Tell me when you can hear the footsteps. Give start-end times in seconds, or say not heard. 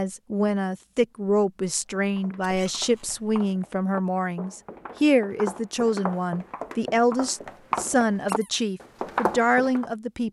1.9-9.9.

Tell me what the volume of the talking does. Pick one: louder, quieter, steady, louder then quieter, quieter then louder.
steady.